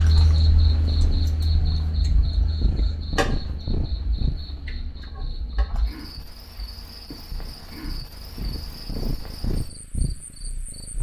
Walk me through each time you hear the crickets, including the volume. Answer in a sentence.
The crickets can be heard from 0.0 to 10.9 s, getting quieter.